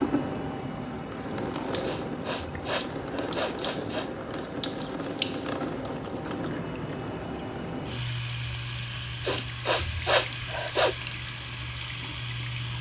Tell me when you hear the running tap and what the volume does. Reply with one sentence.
The running tap can be heard from 0.0 to 12.7 s, at a steady volume.